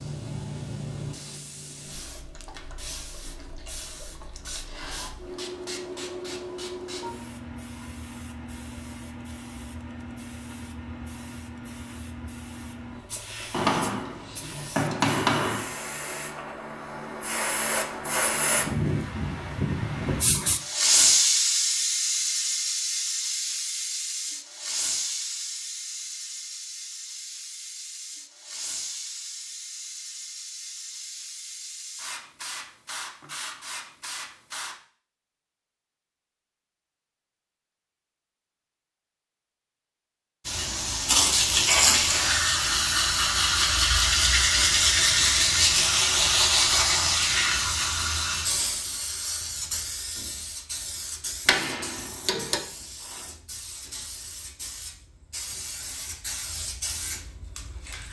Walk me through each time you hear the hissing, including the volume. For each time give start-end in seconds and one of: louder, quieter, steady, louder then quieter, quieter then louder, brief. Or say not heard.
0.0-34.8 louder then quieter
40.5-58.0 quieter.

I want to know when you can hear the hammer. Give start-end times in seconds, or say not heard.
13.5-15.8, 51.5-52.6.